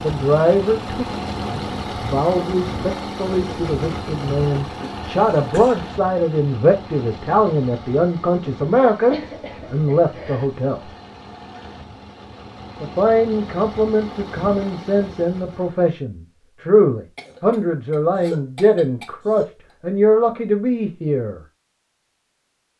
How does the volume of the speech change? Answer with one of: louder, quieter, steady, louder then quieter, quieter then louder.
steady.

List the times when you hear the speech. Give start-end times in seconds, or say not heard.
0.0-10.9, 12.8-21.4.